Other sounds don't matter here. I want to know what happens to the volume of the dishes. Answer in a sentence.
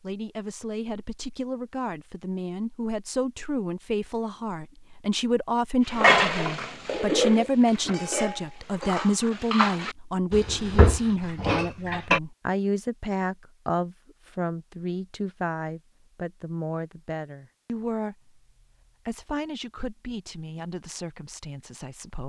The volume of the dishes goes down, then up.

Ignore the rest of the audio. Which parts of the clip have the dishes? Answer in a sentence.
The dishes can be heard from 5.8 to 12.2 s.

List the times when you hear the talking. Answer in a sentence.
You can hear the talking from 0.0 to 18.4 s and from 19.1 to 22.2 s.